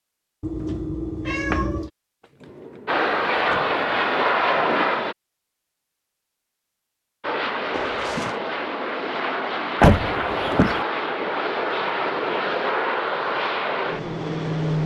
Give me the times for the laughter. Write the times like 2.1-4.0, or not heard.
not heard.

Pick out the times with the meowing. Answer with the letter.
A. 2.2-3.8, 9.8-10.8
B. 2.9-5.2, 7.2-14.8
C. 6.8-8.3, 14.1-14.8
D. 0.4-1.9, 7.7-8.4
D.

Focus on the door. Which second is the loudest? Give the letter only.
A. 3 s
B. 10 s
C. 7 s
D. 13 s
B.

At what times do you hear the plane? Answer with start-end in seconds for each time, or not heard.
2.9-5.2, 7.2-14.8.